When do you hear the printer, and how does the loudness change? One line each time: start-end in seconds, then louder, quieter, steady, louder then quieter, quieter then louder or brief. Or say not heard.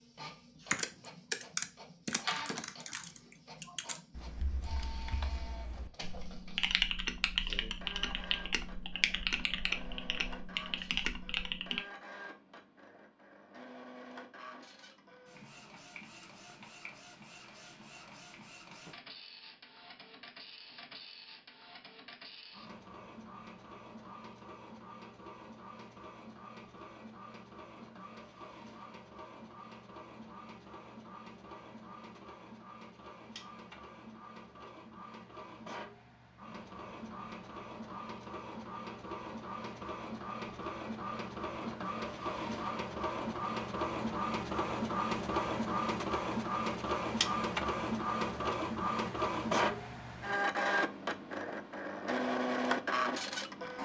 0.0-53.7 louder.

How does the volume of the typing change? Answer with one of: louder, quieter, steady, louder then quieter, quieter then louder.
quieter then louder.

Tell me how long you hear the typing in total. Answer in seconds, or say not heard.
11 s.